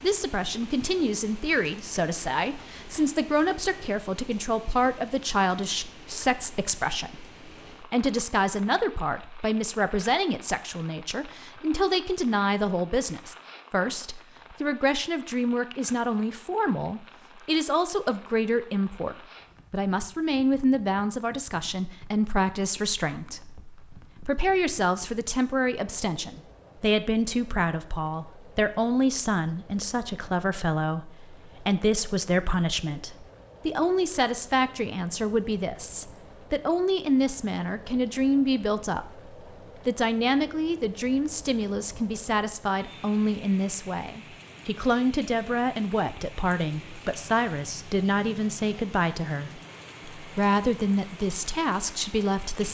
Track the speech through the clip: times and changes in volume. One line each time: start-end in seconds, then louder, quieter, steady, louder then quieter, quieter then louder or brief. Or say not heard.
0.0-52.6 steady.